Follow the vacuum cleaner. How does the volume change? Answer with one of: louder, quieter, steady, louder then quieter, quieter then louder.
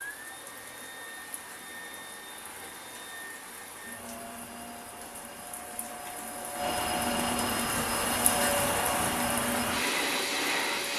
louder.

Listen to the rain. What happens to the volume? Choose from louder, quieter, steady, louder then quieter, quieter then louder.
louder.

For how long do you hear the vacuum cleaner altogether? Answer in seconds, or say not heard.
11 s.